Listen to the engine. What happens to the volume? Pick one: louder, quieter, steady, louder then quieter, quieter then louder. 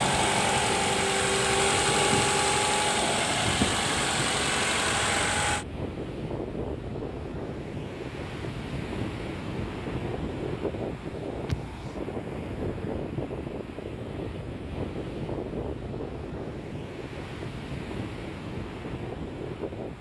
steady.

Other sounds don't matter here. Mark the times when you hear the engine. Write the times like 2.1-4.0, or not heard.
0.0-5.7.